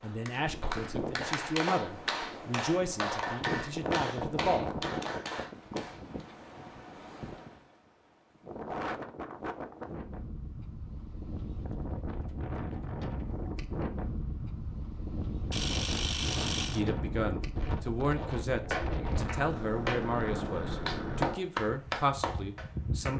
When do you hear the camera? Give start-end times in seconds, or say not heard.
15.5-16.9.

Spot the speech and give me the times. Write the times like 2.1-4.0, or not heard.
0.0-4.8, 16.7-23.1.